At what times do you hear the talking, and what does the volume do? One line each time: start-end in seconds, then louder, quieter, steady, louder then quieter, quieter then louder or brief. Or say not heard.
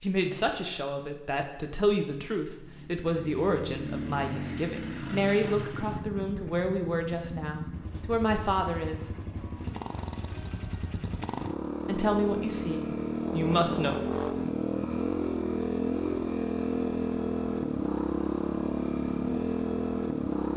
0.0-9.1 steady
11.8-13.9 brief.